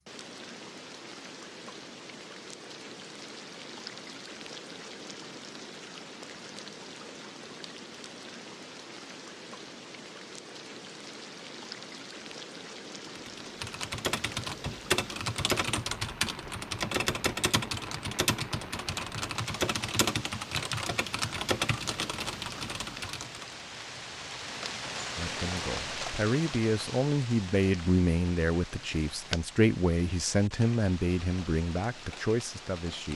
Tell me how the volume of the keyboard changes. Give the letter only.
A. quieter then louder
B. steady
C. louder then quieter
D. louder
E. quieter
B.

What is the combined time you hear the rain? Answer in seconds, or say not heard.
33 s.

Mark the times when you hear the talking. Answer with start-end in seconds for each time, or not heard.
25.1-33.1.